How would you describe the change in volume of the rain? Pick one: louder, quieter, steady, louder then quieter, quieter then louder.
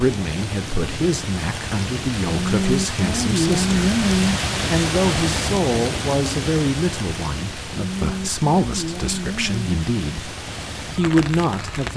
louder then quieter.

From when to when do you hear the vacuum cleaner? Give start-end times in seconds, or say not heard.
not heard.